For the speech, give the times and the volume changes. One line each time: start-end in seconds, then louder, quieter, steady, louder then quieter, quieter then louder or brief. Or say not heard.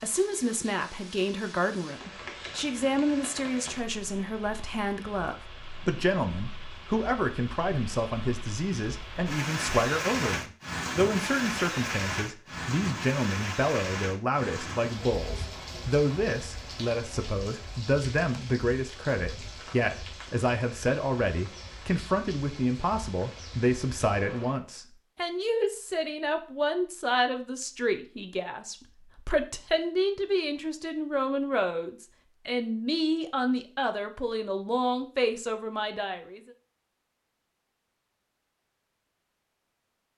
0.0-36.4 steady.